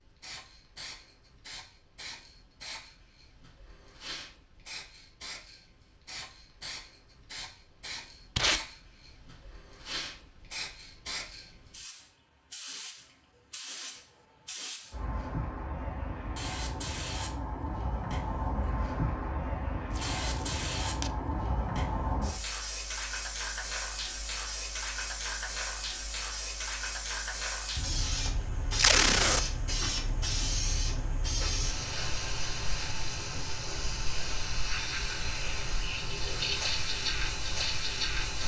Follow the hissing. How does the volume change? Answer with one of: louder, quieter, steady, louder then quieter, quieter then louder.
louder.